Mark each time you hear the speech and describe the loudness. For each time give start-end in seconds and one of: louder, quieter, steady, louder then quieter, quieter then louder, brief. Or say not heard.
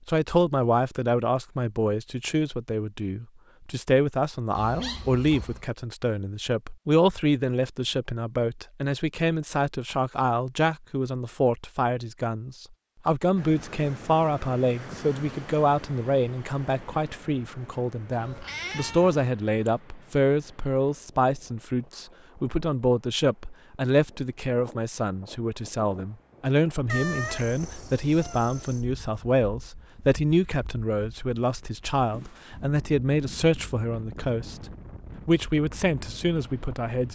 0.1-34.5 steady
35.2-37.1 brief.